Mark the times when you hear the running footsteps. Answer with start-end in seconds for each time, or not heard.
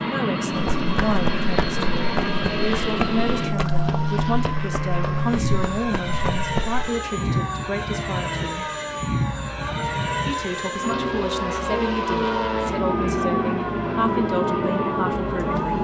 0.5-6.8.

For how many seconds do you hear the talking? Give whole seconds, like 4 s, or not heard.
14 s.